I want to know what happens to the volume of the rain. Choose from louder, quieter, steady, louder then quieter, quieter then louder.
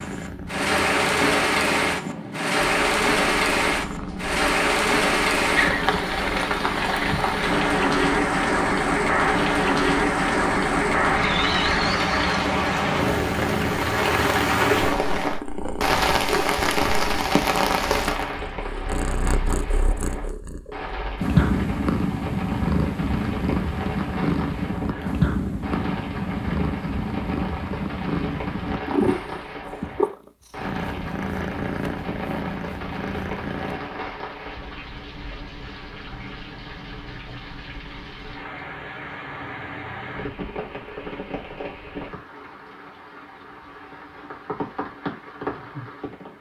quieter.